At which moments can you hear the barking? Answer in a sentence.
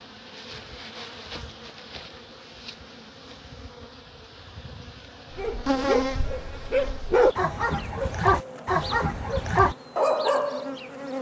You can hear the barking from 5.3 to 10.7 s.